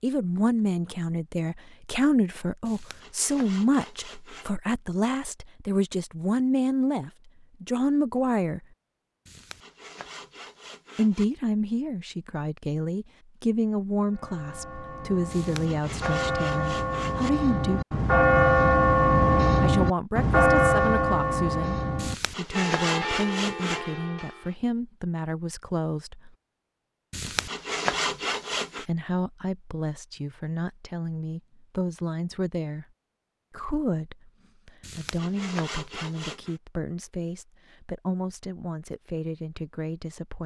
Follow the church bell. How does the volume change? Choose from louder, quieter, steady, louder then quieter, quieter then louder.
louder then quieter.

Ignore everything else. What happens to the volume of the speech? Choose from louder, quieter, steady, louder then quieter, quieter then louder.
quieter.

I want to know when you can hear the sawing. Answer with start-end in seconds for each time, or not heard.
2.6-4.5, 9.2-11.2, 15.3-17.3, 21.9-23.9, 27.1-28.9, 34.8-36.5.